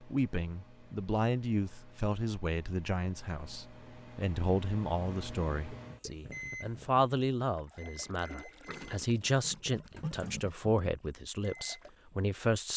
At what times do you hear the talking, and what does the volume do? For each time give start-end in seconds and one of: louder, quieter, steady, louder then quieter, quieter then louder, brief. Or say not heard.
0.0-12.7 steady.